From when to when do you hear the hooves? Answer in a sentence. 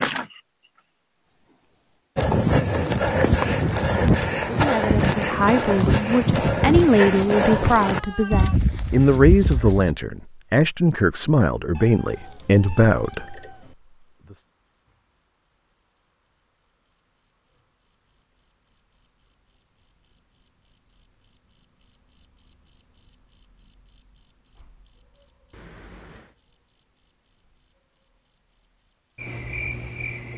The hooves can be heard from 2.1 to 9.9 s.